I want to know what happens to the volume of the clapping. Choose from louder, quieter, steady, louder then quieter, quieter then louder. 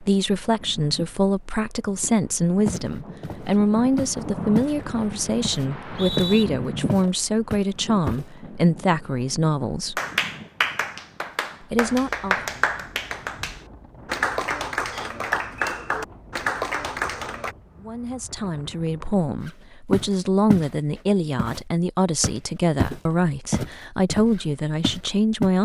steady.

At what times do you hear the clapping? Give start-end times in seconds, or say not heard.
9.9-17.6.